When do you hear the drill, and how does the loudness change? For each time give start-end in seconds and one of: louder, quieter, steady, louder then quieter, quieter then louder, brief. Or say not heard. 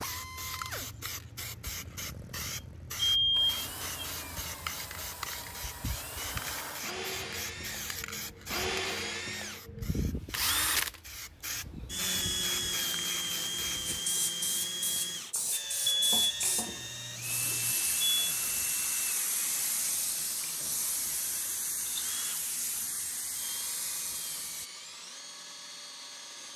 0.0-26.5 louder then quieter.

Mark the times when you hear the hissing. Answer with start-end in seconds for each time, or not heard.
0.0-24.7.